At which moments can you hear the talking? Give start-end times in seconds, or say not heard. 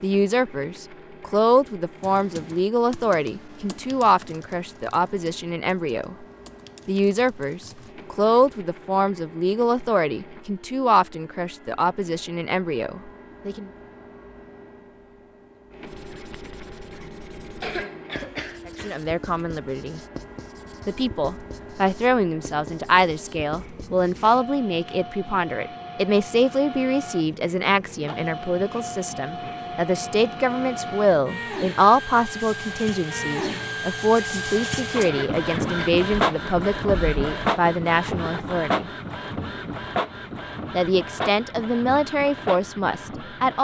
0.0-6.2, 6.8-13.7, 18.6-20.0, 20.9-38.9, 40.7-43.5.